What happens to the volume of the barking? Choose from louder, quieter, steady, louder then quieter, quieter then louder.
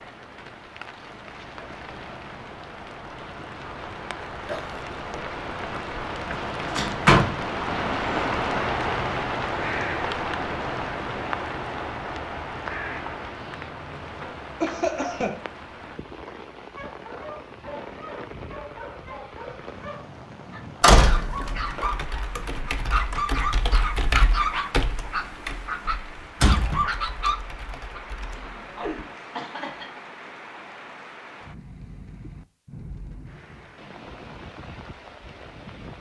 louder.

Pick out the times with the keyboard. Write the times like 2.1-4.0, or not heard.
21.2-29.1.